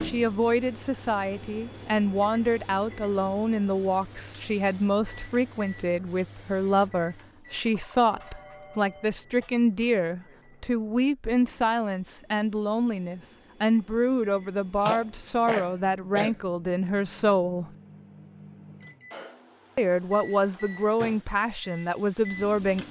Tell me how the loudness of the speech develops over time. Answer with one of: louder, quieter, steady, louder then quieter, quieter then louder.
steady.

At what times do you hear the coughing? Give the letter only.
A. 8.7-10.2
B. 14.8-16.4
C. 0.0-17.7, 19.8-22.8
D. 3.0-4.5
B.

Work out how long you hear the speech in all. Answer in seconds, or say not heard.
21 s.